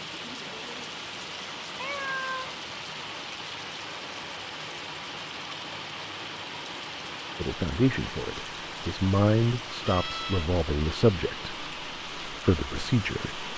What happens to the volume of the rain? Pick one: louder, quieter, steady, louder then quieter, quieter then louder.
steady.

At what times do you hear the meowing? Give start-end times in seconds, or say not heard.
1.8-2.5, 9.8-10.5.